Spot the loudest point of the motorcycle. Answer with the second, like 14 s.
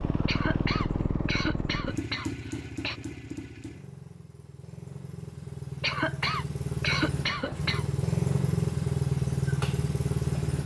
9 s.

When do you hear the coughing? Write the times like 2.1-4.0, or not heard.
0.2-3.0, 5.8-7.8.